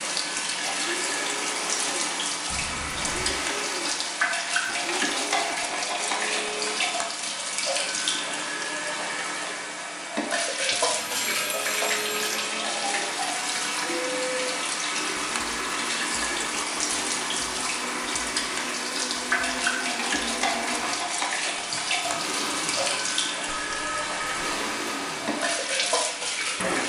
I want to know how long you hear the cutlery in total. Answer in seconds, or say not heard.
not heard.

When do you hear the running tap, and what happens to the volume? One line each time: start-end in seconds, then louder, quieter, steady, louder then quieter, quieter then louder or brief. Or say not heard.
0.0-26.8 steady.